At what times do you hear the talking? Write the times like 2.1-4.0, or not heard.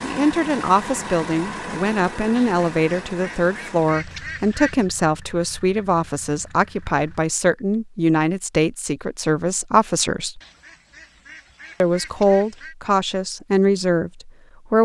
0.0-10.4, 11.8-14.8.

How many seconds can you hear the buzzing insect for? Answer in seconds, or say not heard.
not heard.